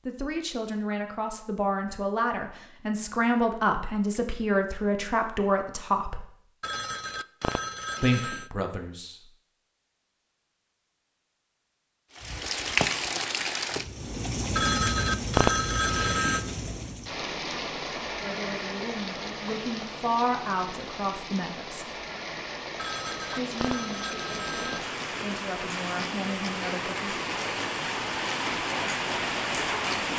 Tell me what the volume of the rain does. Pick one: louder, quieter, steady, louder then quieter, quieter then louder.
quieter then louder.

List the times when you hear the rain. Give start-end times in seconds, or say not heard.
12.1-30.1.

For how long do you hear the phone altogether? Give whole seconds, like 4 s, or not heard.
6 s.